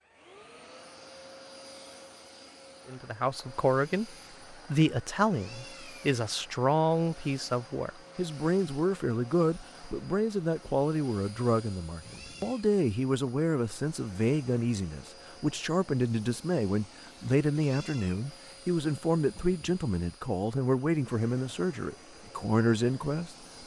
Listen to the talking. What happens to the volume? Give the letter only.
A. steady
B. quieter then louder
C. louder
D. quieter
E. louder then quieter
A.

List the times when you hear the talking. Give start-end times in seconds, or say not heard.
2.9-23.4.